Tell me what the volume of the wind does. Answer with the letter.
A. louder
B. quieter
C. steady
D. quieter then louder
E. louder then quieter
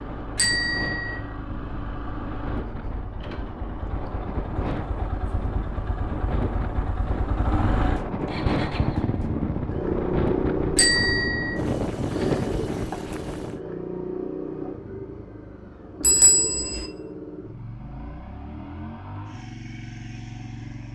A.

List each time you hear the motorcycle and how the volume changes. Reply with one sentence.
You can hear the motorcycle from 0.0 to 20.9 s, getting louder then quieter.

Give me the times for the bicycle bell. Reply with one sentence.
The bicycle bell can be heard from 0.3 to 1.1 s, from 10.8 to 11.6 s and from 16.0 to 16.9 s.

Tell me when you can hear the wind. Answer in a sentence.
The wind can be heard from 0.0 to 13.6 s.